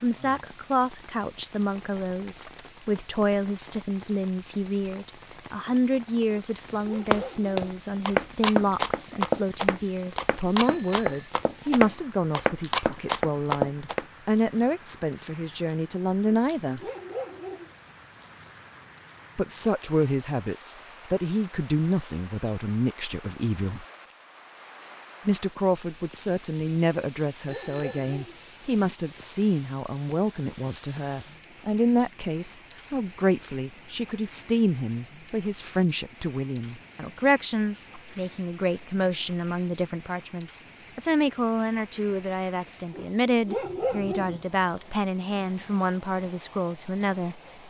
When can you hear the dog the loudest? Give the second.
44 s.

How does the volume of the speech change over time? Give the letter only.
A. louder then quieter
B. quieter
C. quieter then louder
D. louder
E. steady
E.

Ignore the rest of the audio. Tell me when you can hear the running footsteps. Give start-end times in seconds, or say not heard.
6.7-14.1.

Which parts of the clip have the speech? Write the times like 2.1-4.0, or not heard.
0.0-16.8, 19.4-23.9, 25.2-47.4.